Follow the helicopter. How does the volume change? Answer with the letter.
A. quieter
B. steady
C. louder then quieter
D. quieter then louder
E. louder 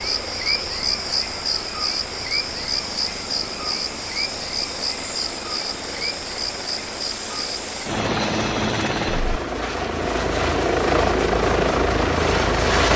E.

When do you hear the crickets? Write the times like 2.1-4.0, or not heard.
0.0-7.9.